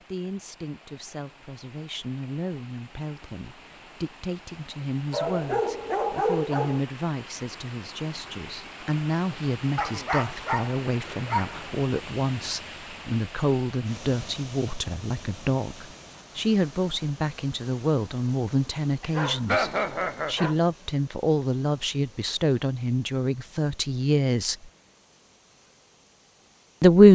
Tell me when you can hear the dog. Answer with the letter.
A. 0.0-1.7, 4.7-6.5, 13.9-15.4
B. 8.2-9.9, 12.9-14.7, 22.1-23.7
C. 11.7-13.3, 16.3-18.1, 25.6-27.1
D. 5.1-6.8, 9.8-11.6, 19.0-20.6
D.